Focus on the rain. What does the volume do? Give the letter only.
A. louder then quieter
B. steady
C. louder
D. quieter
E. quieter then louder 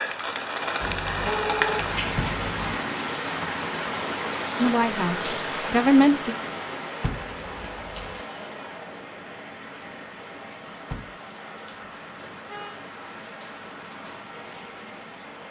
D.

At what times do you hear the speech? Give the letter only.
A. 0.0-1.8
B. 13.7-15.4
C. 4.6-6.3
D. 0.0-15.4
C.